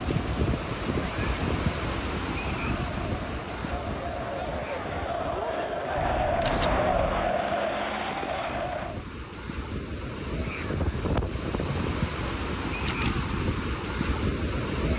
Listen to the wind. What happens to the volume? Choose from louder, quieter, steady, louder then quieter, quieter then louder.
quieter then louder.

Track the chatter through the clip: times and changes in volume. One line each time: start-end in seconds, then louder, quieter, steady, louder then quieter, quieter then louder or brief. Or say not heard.
0.0-9.1 louder.